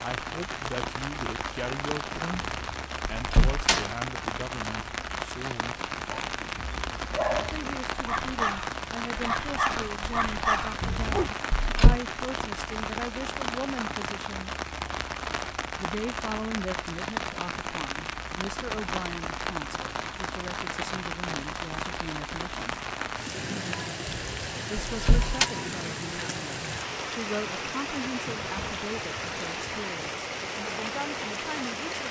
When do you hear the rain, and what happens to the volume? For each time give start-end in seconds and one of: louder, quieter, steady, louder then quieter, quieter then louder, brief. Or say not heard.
0.0-32.0 steady.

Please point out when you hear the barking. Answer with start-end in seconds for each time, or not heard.
6.1-11.3.